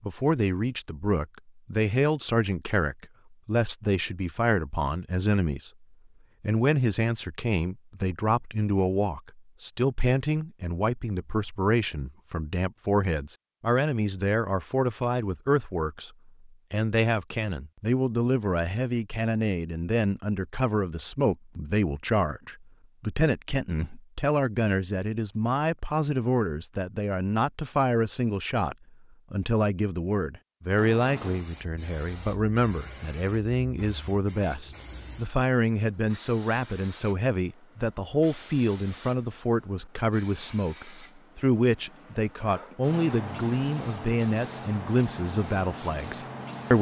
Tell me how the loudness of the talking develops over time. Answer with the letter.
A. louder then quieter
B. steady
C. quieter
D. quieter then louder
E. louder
B.